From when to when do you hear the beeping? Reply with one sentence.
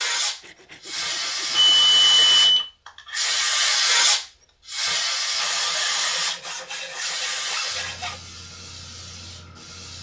You can hear the beeping from 1.6 to 2.6 s.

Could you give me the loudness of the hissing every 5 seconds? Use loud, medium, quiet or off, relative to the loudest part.
loud, medium.